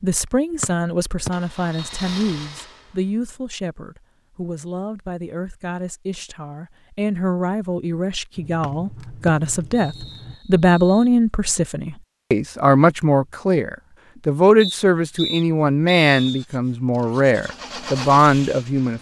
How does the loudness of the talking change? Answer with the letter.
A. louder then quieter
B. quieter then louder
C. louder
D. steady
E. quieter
C.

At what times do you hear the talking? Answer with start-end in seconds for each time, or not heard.
0.0-18.9.